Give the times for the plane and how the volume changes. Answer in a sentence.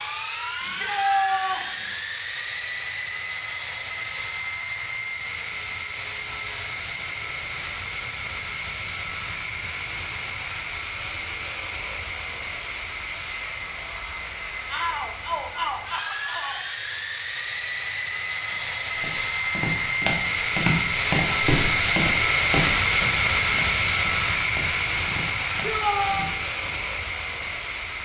You can hear the plane from 0.0 to 28.0 s, getting louder.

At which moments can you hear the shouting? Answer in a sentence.
The shouting can be heard from 0.6 to 1.9 s, from 14.7 to 16.6 s and from 25.6 to 26.3 s.